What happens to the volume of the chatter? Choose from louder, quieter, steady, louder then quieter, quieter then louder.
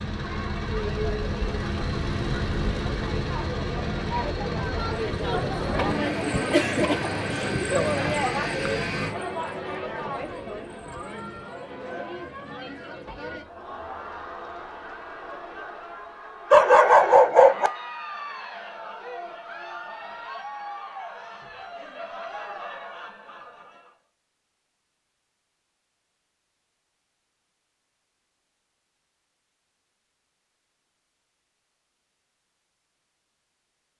louder then quieter.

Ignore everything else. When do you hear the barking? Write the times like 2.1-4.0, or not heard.
16.5-17.7.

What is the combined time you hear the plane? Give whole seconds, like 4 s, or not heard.
9 s.